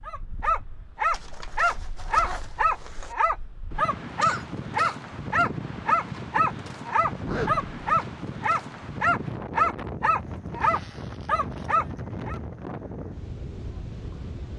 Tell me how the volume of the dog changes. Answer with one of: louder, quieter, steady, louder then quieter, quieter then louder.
steady.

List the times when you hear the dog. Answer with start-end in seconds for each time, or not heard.
0.1-12.4.